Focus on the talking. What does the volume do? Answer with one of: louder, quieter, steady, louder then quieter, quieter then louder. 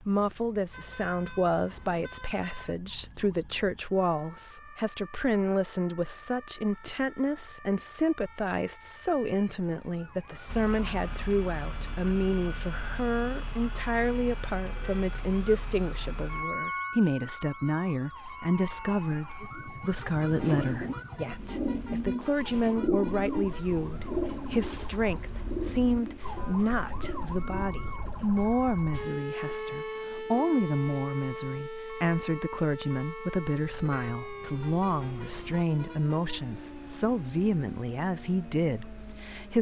steady.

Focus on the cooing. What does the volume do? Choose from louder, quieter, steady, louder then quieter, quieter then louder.
quieter.